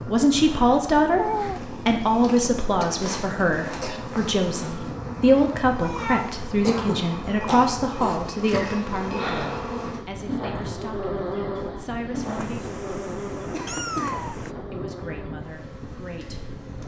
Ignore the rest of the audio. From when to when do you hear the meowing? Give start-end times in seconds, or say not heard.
1.1-1.8, 5.8-6.5, 12.2-14.5.